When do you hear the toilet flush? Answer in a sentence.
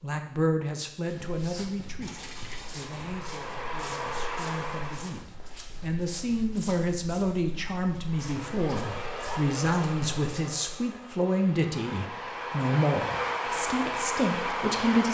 You can hear the toilet flush from 2.0 to 2.9 s.